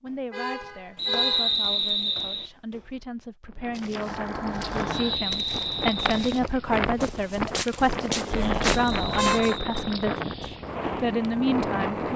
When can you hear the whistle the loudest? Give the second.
1 s.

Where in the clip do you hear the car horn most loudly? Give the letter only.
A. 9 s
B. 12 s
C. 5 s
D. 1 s
A.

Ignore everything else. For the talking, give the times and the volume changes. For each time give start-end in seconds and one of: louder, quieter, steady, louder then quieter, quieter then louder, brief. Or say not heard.
0.0-12.1 louder.